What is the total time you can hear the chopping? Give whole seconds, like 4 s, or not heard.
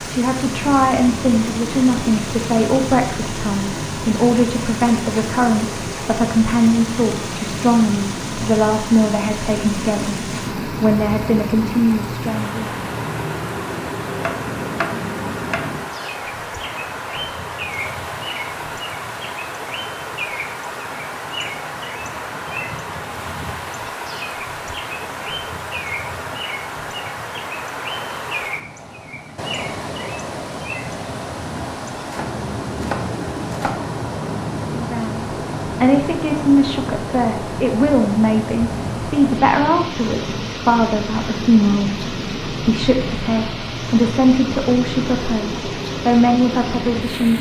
3 s.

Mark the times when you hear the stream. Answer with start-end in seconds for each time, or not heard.
0.0-47.3.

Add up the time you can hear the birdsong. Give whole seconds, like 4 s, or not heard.
47 s.